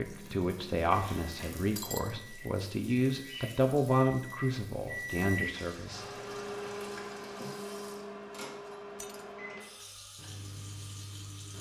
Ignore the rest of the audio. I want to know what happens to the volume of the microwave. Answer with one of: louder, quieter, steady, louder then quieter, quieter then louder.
louder then quieter.